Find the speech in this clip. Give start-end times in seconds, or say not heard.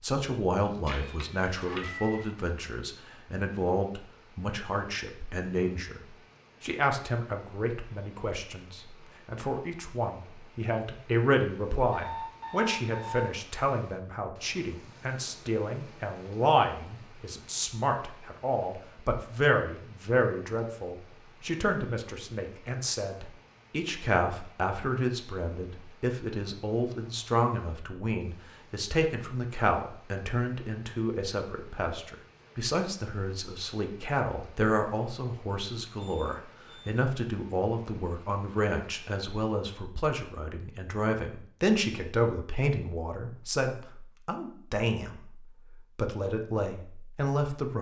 0.0-47.7.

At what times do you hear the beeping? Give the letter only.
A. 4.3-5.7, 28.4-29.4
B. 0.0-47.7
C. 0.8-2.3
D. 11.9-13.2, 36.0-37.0
D.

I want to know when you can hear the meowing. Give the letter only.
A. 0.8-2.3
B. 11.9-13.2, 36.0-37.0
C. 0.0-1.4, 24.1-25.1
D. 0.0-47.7
A.